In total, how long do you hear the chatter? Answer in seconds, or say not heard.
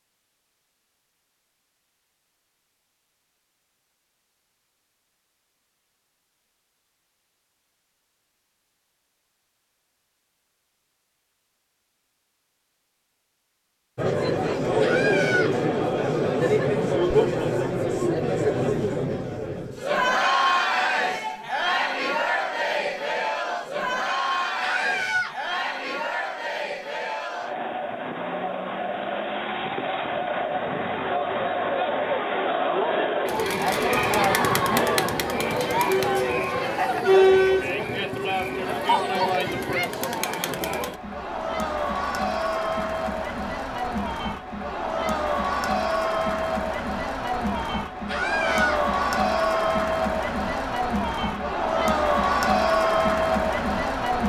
40 s.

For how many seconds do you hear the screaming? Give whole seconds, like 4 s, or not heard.
2 s.